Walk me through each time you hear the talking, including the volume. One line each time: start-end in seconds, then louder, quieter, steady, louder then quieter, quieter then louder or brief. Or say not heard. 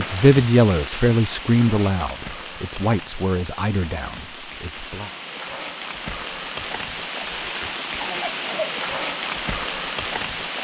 0.0-5.1 quieter.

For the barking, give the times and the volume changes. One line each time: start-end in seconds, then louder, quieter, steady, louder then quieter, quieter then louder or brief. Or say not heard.
not heard.